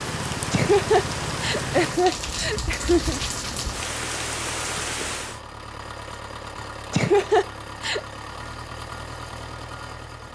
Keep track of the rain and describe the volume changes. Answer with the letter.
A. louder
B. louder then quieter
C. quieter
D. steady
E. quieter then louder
D.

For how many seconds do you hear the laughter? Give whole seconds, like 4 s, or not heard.
4 s.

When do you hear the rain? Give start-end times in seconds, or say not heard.
0.0-5.4.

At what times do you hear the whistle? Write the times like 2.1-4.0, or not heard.
not heard.